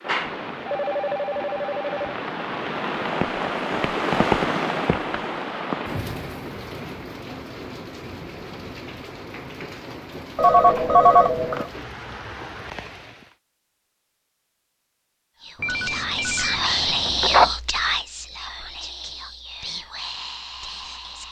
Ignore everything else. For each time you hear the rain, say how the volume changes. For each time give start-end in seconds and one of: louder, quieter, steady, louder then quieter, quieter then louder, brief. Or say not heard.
0.0-13.3 louder then quieter.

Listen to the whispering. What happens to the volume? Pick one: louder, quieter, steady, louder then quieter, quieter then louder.
quieter.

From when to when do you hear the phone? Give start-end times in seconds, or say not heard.
0.0-2.1, 10.3-11.7, 15.6-17.5.